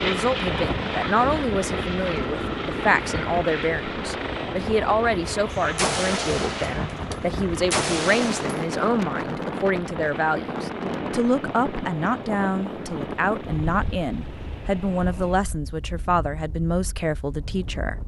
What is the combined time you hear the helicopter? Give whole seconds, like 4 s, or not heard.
15 s.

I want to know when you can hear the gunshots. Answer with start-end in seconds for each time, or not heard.
5.5-8.8.